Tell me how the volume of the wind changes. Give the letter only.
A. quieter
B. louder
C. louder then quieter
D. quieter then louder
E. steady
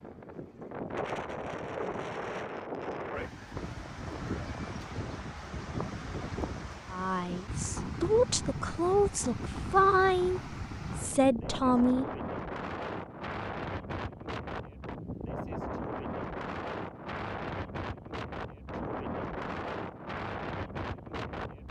E.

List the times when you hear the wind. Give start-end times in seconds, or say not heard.
0.0-21.6.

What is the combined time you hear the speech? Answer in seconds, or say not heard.
5 s.